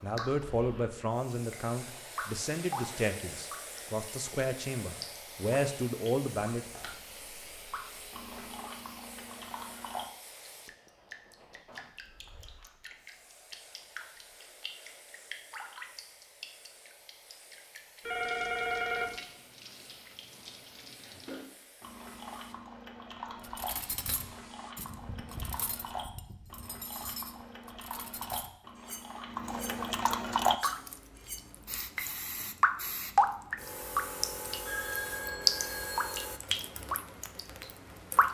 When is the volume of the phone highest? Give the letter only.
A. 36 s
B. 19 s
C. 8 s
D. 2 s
B.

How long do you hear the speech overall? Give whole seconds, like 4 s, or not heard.
7 s.